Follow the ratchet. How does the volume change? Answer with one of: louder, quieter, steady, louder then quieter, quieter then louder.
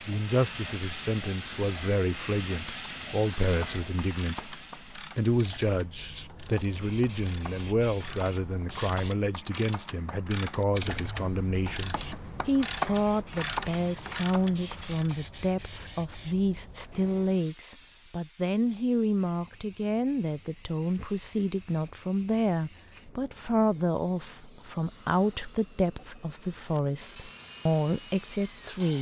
louder.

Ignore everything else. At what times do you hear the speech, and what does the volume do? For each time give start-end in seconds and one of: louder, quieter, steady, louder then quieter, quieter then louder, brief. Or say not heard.
0.1-28.9 steady.